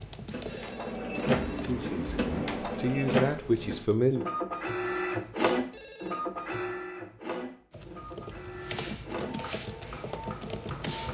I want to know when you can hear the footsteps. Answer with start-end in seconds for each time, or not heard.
not heard.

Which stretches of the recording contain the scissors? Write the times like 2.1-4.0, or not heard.
1.1-2.8.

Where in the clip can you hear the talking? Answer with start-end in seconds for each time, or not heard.
1.6-4.2.